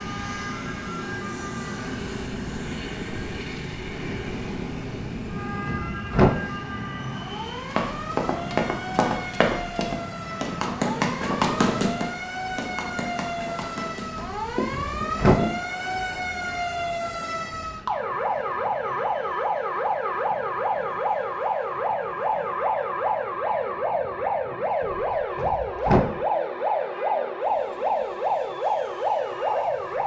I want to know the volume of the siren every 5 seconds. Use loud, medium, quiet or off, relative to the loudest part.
quiet, medium, medium, loud, loud, loud.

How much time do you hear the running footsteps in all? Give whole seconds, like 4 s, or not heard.
8 s.